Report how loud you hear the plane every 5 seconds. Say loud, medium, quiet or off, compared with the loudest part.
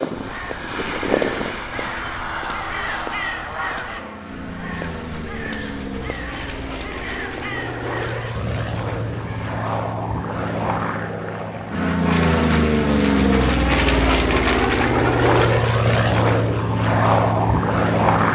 medium, medium, loud, loud.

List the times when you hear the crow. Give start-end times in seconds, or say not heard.
0.1-9.6.